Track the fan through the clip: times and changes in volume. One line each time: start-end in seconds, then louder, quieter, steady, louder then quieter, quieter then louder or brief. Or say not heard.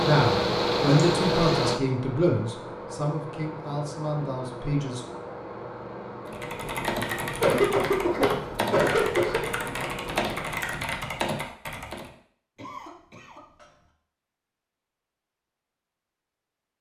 0.0-10.6 quieter.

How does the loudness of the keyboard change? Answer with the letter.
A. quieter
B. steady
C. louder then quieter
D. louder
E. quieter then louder
B.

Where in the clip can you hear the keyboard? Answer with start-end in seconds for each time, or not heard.
6.2-12.1.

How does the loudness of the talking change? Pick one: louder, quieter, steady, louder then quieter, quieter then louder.
quieter.